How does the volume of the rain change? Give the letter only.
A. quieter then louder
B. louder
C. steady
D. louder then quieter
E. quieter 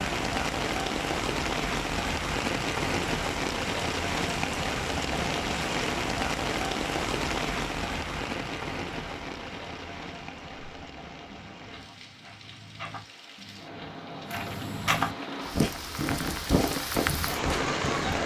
A.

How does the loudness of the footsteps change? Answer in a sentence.
The volume of the footsteps goes up.